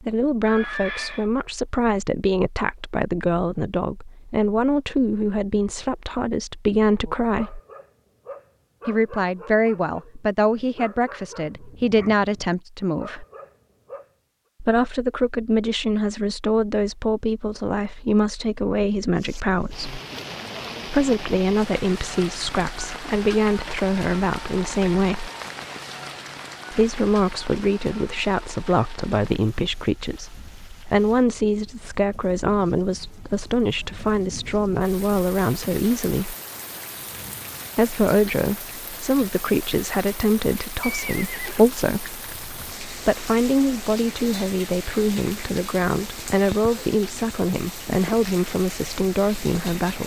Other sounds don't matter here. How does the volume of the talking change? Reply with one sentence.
The volume of the talking stays about the same.